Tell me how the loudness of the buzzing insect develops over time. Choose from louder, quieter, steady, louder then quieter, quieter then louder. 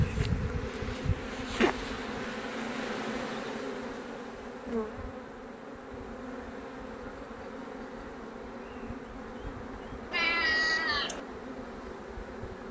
quieter.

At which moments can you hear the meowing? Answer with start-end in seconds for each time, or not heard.
10.1-11.2.